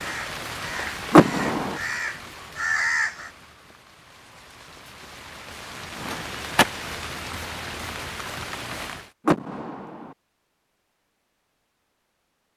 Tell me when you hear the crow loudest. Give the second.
3 s.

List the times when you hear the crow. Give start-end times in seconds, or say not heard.
0.0-3.3.